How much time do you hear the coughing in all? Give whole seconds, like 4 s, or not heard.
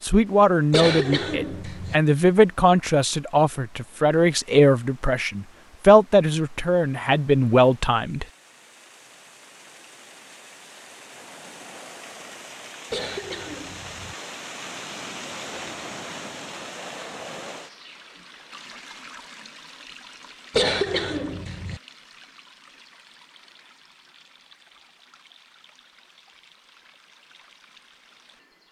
4 s.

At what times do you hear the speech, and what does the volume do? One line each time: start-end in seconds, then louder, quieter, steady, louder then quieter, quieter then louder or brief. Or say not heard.
0.0-8.2 steady.